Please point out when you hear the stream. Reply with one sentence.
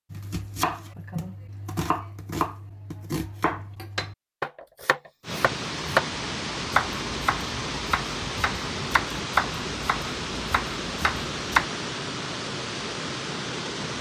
The stream can be heard from 5.2 to 13.9 s.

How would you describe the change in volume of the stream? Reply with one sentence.
The volume of the stream stays about the same.